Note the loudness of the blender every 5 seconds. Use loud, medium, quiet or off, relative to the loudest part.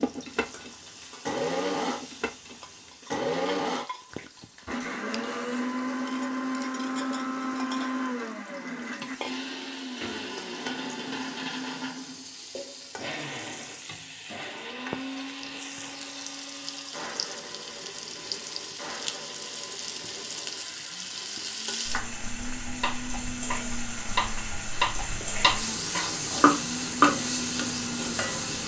loud, loud, medium, medium, medium, medium.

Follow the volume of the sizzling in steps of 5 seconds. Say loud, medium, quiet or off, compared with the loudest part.
quiet, quiet, medium, medium, medium, loud.